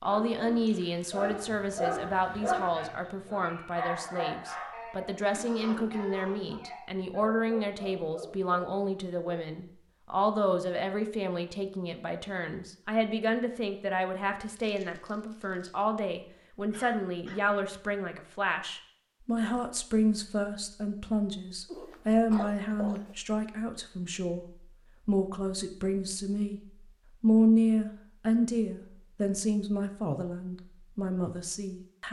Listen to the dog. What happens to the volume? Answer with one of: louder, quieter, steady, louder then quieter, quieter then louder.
quieter.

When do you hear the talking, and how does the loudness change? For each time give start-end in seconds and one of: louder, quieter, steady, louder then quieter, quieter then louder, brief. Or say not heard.
0.0-24.4 steady
25.1-26.6 brief
27.2-32.0 quieter.